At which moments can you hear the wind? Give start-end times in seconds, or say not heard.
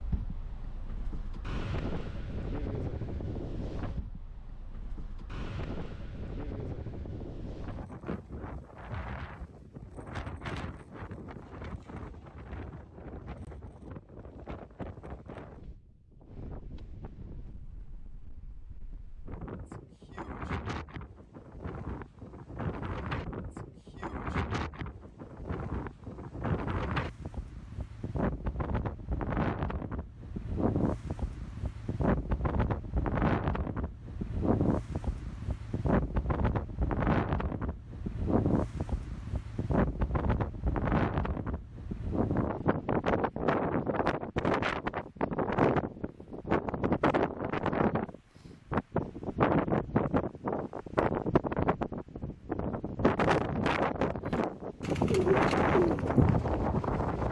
0.0-57.2.